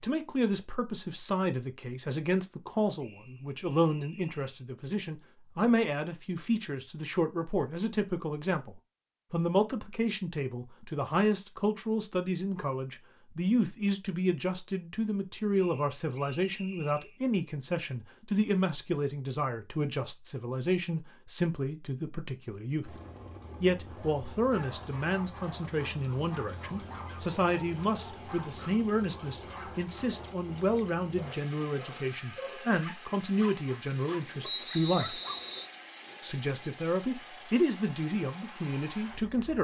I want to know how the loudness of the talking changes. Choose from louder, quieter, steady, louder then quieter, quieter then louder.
steady.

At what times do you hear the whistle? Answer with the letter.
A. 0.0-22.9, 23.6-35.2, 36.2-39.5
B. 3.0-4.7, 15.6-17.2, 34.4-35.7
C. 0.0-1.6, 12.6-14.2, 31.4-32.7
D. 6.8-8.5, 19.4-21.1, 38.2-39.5
B.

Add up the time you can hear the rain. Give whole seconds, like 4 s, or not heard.
not heard.